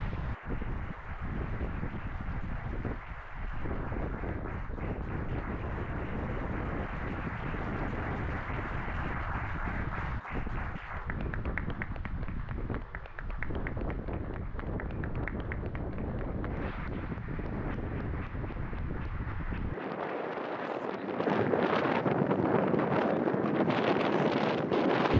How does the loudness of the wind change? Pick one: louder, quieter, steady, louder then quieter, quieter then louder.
louder.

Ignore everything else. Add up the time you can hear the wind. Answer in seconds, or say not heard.
25 s.